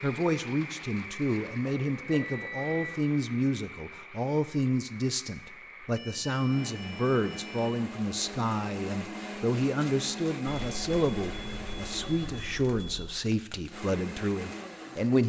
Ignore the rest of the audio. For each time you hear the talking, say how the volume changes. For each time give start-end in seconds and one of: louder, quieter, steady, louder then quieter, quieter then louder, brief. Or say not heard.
0.0-15.2 steady.